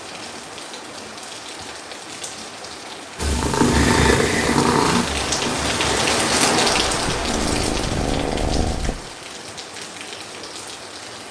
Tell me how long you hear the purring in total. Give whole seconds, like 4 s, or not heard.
6 s.